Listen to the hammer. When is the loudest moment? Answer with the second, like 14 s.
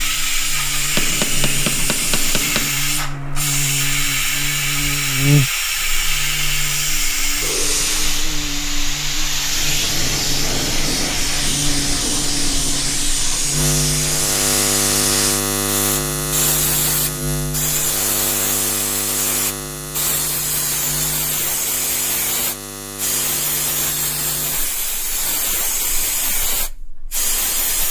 1 s.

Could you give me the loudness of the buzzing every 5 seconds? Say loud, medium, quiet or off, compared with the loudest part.
medium, loud, loud, loud, medium, quiet.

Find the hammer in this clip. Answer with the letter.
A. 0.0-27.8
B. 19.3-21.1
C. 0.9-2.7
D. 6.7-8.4
C.